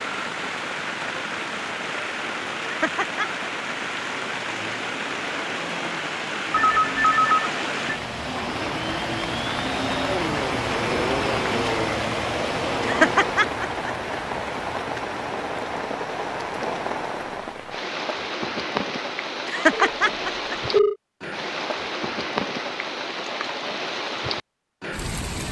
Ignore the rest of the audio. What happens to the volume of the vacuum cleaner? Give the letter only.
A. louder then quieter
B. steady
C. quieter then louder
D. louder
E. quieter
D.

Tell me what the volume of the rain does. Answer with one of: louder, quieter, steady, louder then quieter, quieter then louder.
steady.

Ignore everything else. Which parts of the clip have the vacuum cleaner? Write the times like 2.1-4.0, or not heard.
4.0-13.5.